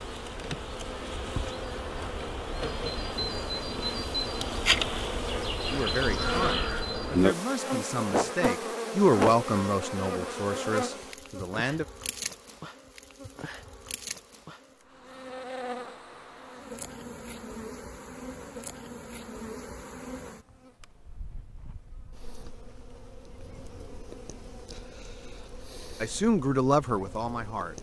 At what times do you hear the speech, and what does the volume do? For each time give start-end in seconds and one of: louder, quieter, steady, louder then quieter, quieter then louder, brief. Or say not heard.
5.7-11.8 louder then quieter
26.0-27.7 brief.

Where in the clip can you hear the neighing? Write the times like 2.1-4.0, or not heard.
not heard.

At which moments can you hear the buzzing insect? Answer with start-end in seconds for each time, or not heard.
0.0-27.7.